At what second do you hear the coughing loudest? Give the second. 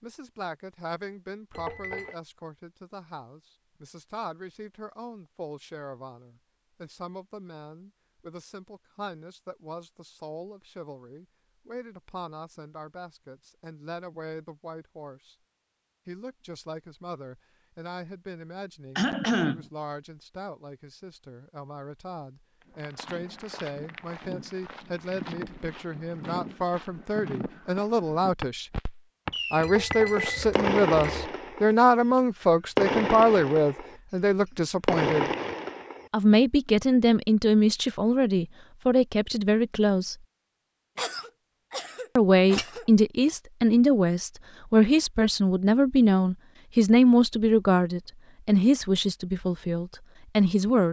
19 s.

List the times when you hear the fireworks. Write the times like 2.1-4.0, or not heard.
28.8-29.7, 30.6-36.1.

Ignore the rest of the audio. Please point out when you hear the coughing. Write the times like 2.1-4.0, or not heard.
18.9-19.6, 41.0-42.9.